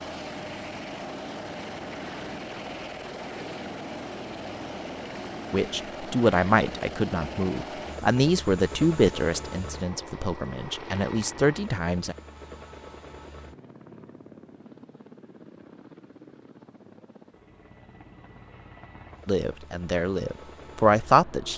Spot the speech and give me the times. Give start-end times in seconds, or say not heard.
5.5-12.2, 19.2-21.5.